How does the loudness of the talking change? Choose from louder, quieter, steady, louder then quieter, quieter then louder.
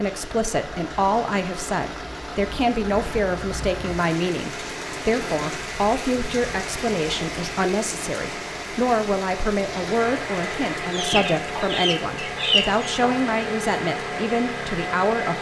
steady.